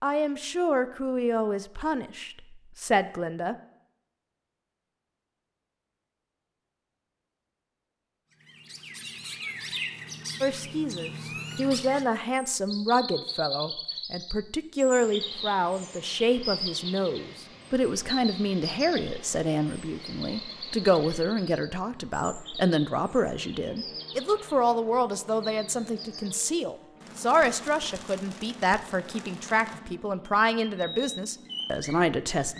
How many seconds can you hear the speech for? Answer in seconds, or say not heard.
26 s.